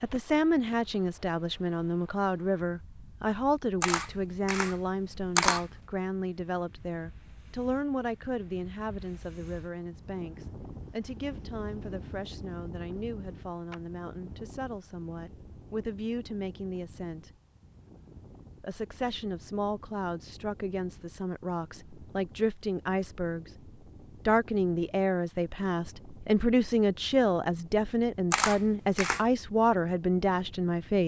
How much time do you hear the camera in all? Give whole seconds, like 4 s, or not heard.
3 s.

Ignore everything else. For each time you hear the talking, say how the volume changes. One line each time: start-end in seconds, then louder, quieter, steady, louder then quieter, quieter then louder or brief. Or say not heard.
0.0-17.3 quieter
18.6-31.0 louder.